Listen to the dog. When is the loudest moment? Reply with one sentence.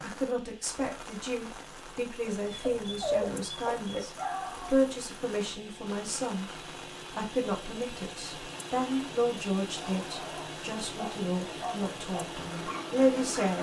The loudest moment of the dog is at 3 seconds.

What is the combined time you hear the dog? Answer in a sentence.
You can hear the dog for 6 seconds altogether.